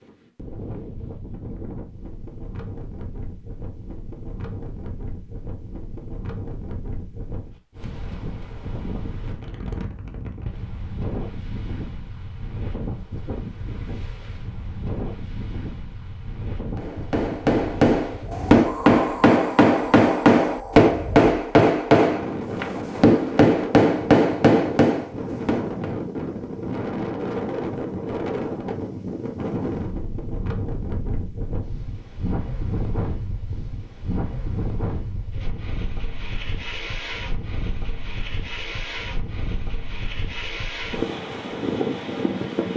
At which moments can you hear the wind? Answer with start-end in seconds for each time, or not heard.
0.0-42.7.